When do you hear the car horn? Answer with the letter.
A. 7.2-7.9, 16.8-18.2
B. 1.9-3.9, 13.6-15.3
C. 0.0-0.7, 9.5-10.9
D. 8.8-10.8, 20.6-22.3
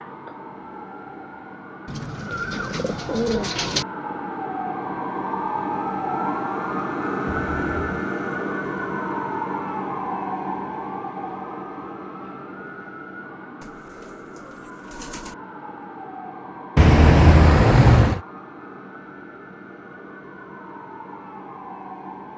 A.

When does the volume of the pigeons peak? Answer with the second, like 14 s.
3 s.